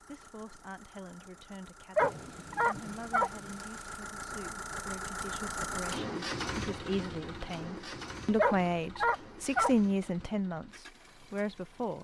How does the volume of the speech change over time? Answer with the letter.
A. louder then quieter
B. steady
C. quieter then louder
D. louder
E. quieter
D.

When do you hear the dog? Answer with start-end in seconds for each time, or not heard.
1.9-3.3, 8.3-9.7.